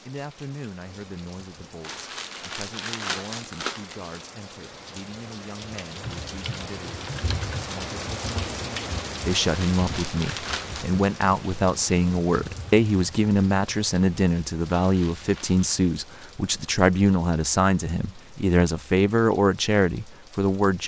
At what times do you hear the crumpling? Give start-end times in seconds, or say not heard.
1.8-4.2, 9.2-10.9, 14.8-15.8.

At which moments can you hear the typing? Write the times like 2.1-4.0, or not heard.
6.0-7.8.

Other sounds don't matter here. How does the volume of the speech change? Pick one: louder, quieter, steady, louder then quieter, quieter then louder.
louder.